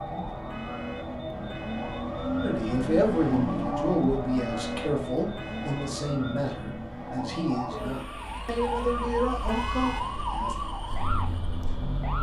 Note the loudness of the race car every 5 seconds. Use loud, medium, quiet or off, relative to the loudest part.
loud, medium, quiet.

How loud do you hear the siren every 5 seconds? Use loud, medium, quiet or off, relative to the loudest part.
medium, loud, loud.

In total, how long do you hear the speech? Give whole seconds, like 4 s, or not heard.
8 s.